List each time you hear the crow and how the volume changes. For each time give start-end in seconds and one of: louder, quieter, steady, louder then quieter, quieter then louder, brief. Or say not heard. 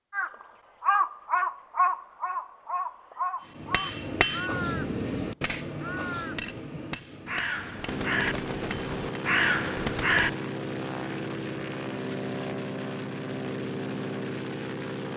0.1-10.3 quieter then louder.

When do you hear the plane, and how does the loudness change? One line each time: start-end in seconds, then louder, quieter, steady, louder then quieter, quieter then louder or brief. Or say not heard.
7.8-15.1 steady.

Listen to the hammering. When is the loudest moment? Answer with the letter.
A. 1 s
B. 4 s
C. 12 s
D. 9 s
B.